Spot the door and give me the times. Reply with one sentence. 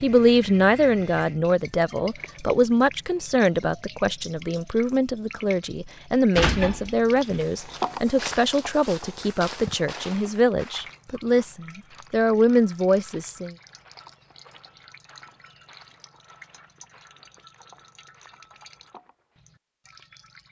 You can hear the door from 6.3 to 7.5 s.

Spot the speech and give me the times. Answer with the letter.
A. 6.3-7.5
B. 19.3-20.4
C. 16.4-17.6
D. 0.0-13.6
D.